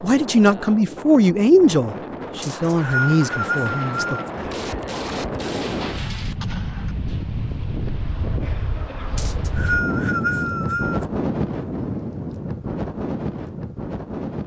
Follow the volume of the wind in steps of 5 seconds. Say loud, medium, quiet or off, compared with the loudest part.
medium, loud, loud.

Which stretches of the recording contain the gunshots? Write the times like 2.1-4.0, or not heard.
4.3-7.0.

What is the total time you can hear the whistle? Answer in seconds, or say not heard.
4 s.